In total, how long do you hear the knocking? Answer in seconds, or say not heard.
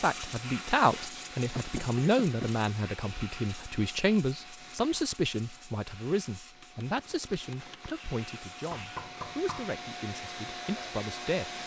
2 s.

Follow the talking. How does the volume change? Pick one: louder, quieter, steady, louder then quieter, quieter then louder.
quieter.